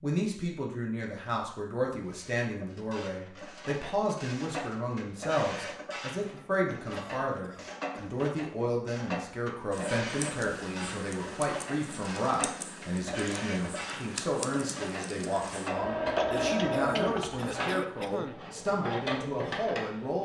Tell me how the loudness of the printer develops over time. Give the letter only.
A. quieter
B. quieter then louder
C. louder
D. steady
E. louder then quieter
C.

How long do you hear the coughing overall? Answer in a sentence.
You can hear the coughing for 3 seconds altogether.